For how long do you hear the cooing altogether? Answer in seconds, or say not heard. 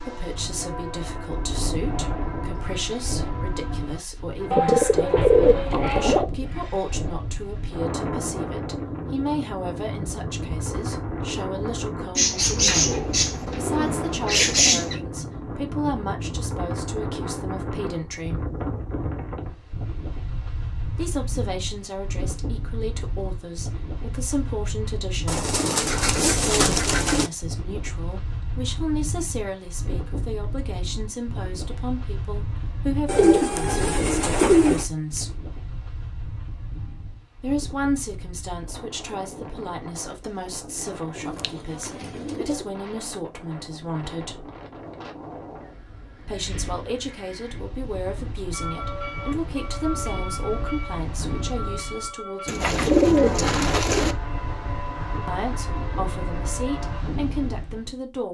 12 s.